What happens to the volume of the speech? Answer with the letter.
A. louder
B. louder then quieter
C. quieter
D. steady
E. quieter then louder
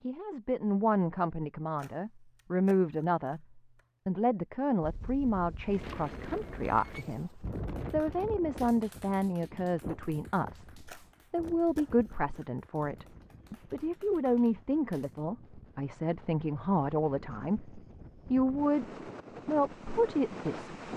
D.